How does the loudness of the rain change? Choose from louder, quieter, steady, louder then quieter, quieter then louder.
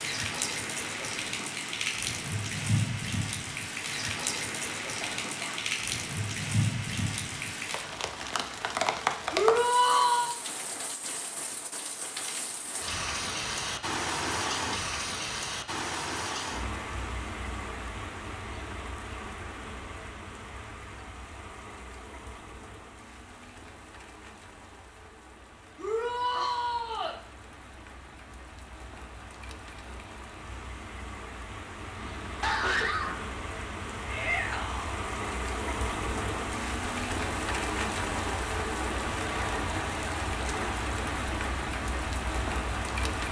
quieter then louder.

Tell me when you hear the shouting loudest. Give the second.
10 s.